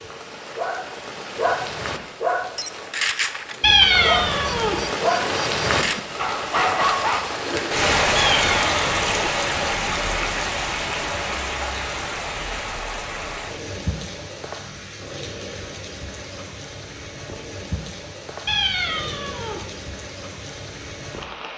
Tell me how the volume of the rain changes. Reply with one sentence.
The volume of the rain goes up, then down.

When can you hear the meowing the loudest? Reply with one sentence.
The volume of the meowing peaks at 4 seconds.